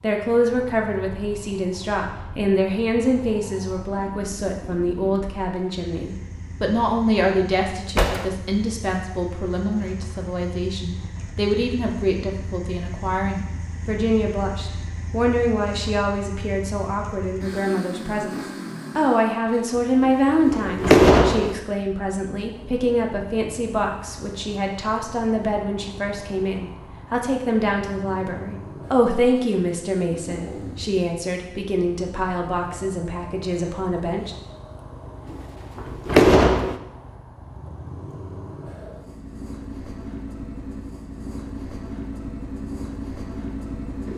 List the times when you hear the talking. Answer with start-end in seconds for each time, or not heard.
0.0-34.4.